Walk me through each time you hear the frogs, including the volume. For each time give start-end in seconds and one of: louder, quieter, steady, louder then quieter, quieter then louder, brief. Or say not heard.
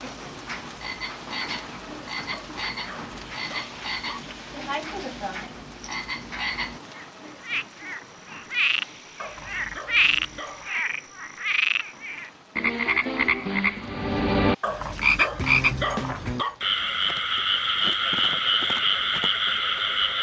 0.0-20.1 louder.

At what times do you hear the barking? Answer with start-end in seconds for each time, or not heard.
2.3-4.2, 9.2-10.7, 14.6-16.6.